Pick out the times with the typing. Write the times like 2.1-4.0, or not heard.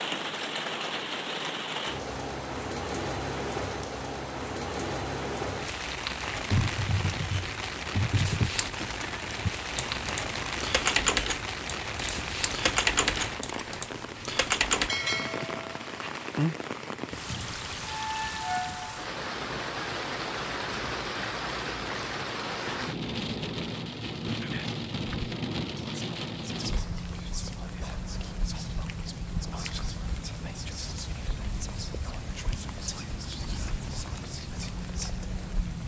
6.3-14.9.